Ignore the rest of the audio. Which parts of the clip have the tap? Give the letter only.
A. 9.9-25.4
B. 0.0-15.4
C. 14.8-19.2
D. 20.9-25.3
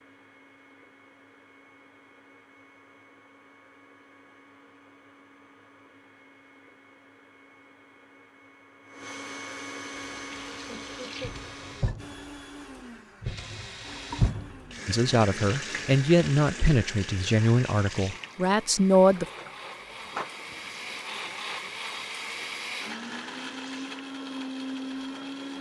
A.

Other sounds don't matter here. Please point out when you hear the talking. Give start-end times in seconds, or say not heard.
14.8-19.2.